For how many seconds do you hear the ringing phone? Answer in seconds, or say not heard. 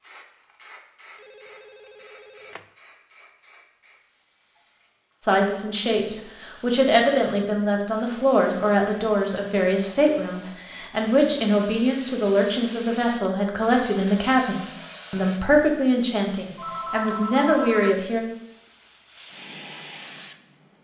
3 s.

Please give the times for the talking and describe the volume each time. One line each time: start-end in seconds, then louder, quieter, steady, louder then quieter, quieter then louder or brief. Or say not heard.
5.2-18.2 steady.